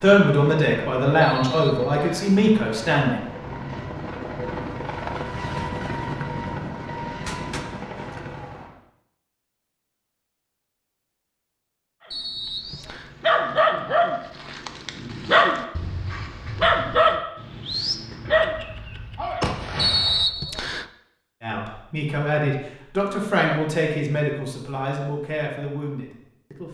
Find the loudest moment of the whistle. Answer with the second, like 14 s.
20 s.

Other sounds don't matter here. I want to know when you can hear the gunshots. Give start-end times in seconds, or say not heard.
7.2-8.7, 18.2-20.2.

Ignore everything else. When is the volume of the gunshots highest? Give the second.
19 s.